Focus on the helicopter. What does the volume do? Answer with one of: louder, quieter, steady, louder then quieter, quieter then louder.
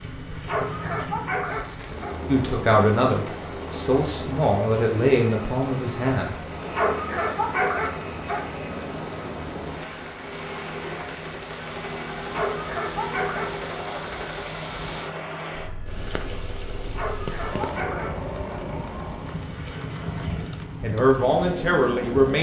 steady.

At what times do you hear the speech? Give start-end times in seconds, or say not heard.
2.2-6.4, 20.8-22.3.